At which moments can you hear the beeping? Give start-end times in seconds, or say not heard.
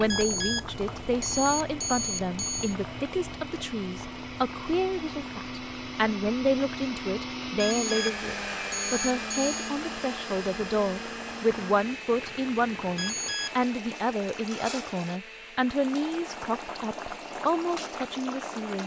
0.1-2.8, 7.5-9.7, 12.9-13.6.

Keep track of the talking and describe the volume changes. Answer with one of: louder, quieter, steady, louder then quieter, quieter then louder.
steady.